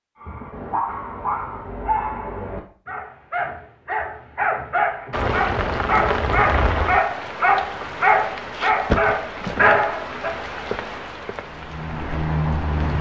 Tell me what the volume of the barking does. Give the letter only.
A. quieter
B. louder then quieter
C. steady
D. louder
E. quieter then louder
D.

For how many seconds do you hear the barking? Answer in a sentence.
You can hear the barking for 10 seconds altogether.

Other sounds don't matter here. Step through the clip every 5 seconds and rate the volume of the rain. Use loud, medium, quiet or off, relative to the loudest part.
off, loud, loud.